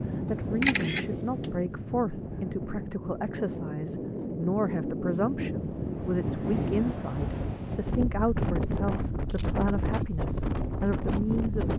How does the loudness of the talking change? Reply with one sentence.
The volume of the talking stays about the same.